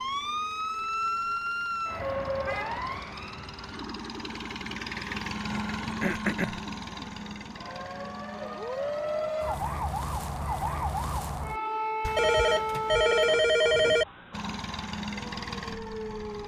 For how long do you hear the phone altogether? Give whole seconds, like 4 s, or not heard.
2 s.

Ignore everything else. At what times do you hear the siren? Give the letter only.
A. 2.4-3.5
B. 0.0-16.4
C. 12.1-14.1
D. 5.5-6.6
B.